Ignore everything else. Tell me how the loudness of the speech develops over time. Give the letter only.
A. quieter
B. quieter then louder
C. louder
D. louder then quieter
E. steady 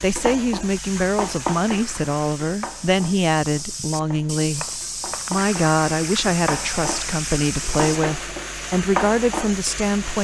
E.